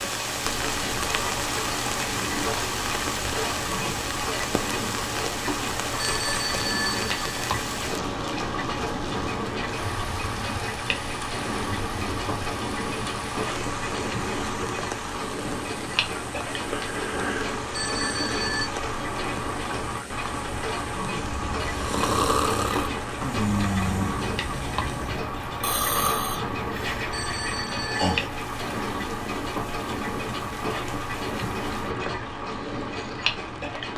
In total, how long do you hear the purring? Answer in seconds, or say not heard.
not heard.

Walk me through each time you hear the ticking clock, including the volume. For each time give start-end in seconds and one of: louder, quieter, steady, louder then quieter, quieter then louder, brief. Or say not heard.
0.0-33.9 steady.